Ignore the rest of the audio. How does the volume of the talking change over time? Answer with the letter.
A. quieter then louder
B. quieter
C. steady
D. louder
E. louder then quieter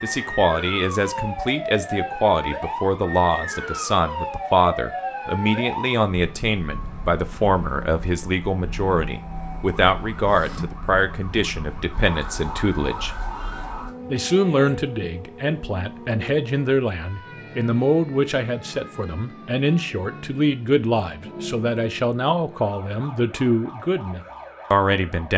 C.